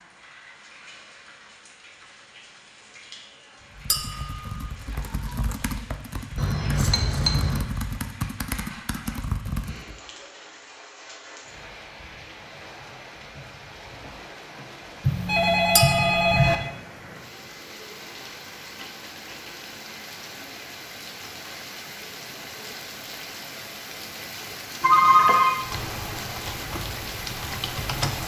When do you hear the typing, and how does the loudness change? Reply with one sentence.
The typing can be heard from 3.6 to 9.9 s, getting louder; and briefly from 25.6 to 28.2 s.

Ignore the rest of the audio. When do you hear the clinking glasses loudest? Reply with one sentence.
The volume of the clinking glasses peaks at 16 seconds.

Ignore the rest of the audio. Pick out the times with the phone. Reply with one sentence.
You can hear the phone from 6.3 to 7.7 s, from 15.0 to 16.6 s and from 24.8 to 25.6 s.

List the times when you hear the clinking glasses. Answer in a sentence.
You can hear the clinking glasses from 3.9 to 4.7 s and from 15.8 to 16.4 s.